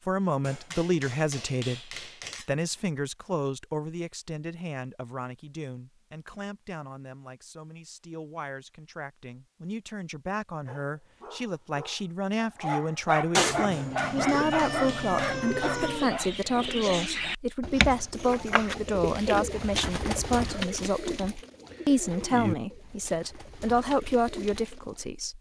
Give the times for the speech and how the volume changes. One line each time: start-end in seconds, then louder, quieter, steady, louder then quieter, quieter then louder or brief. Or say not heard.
0.1-25.3 quieter then louder.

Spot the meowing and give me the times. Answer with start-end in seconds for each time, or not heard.
13.3-16.1.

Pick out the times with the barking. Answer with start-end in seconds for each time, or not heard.
10.7-17.1.